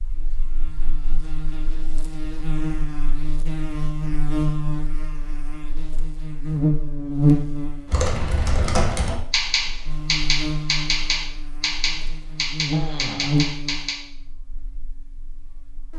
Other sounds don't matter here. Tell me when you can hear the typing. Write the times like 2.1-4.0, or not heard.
7.9-13.9.